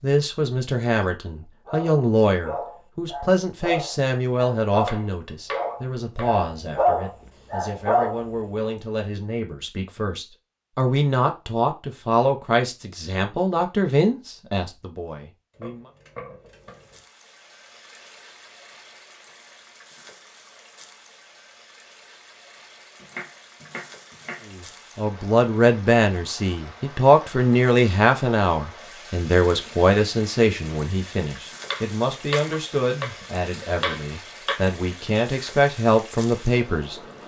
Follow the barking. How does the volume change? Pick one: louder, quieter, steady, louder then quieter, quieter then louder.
louder.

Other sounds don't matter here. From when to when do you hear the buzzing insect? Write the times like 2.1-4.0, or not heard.
not heard.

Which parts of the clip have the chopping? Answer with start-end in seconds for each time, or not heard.
4.8-6.4, 15.5-17.1, 23.0-24.4, 31.6-34.6.